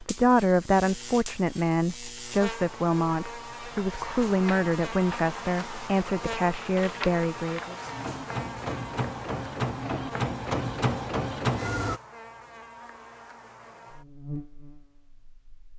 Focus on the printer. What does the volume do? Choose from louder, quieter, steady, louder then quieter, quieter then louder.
louder.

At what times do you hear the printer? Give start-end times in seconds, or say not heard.
4.0-12.0.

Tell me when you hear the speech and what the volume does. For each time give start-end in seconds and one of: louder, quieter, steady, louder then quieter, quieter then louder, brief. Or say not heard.
0.0-7.8 steady.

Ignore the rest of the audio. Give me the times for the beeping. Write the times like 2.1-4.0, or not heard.
not heard.